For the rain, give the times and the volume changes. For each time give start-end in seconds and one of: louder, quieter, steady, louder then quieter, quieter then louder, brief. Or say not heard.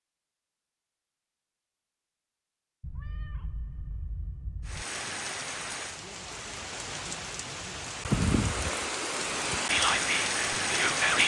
4.7-11.2 louder.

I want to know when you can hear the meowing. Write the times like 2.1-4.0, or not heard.
2.8-4.8.